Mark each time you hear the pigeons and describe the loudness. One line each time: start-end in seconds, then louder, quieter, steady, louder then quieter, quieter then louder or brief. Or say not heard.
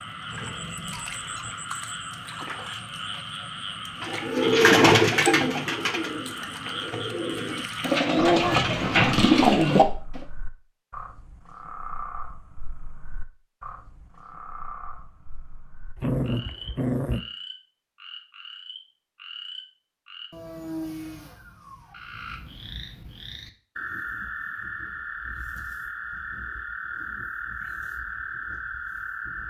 4.0-10.2 quieter then louder.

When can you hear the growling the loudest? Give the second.
16 s.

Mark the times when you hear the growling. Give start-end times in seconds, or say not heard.
0.3-1.6, 15.9-17.2.